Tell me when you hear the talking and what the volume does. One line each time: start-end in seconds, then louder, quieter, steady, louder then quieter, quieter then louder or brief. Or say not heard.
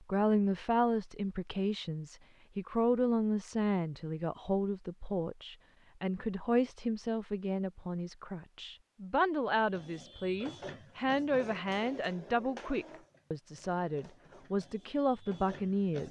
0.1-16.0 steady.